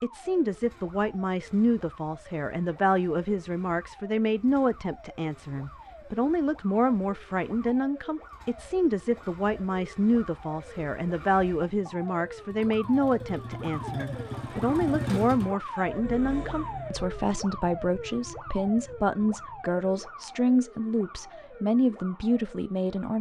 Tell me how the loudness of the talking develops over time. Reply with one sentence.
The loudness of the talking stays about the same.